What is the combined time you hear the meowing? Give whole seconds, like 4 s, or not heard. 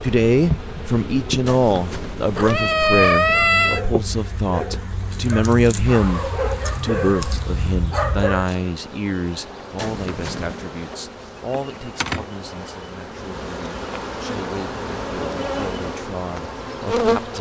3 s.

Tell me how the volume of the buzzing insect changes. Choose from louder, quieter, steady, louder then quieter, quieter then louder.
quieter then louder.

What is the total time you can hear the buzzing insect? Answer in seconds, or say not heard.
17 s.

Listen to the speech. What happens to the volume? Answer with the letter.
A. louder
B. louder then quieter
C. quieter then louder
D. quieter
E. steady
D.